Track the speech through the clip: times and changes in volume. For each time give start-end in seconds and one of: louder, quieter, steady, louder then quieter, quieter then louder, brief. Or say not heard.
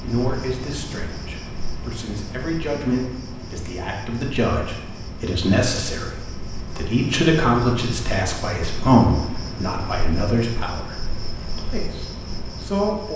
0.0-13.1 louder then quieter.